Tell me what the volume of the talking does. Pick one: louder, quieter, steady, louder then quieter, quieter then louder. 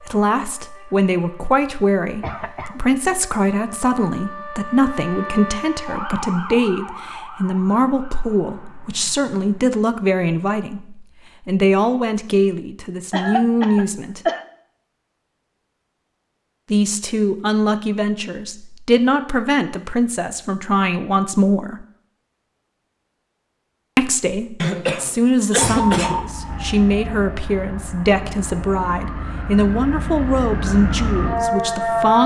steady.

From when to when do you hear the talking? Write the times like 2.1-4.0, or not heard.
0.0-14.2, 16.7-21.9, 23.9-32.2.